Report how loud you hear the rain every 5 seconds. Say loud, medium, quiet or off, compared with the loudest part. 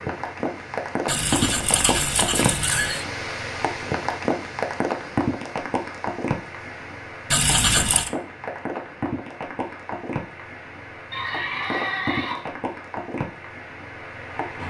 loud, loud, medium.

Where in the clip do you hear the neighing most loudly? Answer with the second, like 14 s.
8 s.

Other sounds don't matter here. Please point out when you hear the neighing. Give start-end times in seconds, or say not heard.
1.1-3.0, 7.3-8.1, 11.1-12.6.